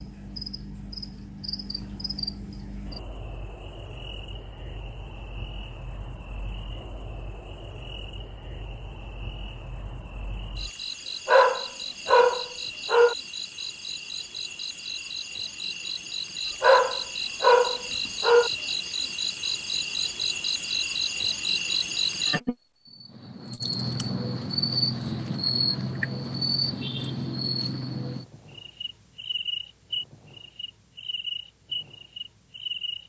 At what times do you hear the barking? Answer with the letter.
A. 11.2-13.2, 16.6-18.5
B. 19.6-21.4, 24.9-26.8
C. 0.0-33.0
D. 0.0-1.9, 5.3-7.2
A.